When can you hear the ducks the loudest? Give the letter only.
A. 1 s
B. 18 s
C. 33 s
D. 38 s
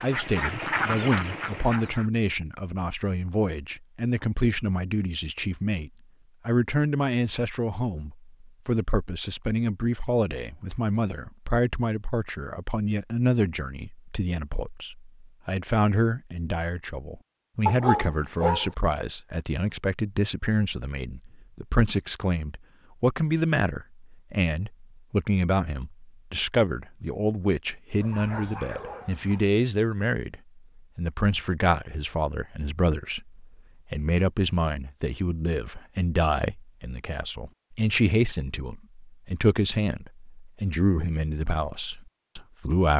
A.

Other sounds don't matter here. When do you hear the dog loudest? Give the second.
18 s.